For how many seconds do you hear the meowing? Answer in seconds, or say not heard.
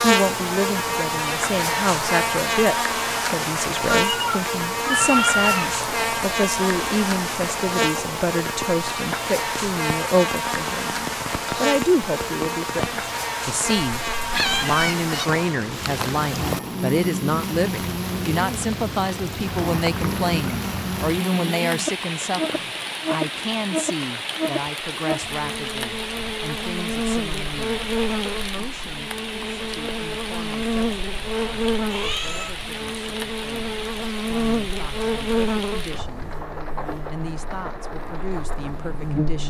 3 s.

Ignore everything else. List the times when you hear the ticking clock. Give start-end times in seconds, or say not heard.
not heard.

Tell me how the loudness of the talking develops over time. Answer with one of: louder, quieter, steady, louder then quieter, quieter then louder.
quieter.